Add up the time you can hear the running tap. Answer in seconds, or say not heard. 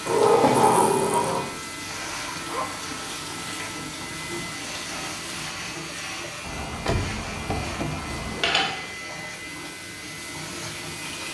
11 s.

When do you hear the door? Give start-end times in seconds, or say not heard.
0.1-1.5, 6.4-8.3.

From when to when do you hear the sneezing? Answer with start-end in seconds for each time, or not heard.
not heard.